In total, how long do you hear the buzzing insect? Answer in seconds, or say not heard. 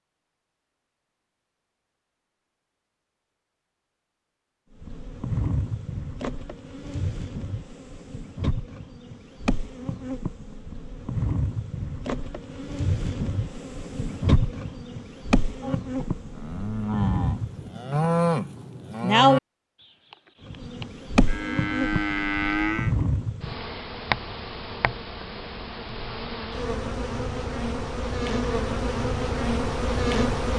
23 s.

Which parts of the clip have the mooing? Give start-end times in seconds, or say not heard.
15.6-22.9.